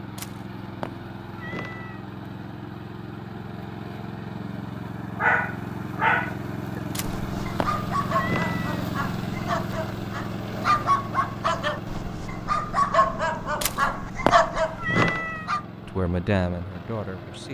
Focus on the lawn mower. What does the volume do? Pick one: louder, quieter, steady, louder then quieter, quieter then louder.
louder then quieter.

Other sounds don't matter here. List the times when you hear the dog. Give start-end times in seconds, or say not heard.
5.2-15.6.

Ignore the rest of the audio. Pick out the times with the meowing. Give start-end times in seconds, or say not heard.
0.1-2.0, 6.9-8.8, 13.6-15.5.